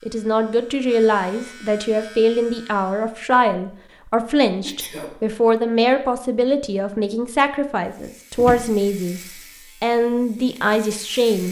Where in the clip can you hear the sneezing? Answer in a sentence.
You can hear the sneezing from 4.6 to 5.2 s.